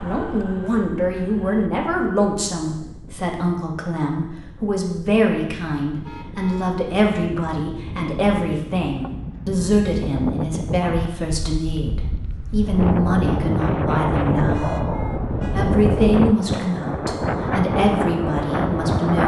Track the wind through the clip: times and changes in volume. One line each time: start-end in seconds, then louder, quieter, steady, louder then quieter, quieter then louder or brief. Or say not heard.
0.0-19.2 louder.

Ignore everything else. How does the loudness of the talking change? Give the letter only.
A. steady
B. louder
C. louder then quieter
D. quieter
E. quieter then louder
A.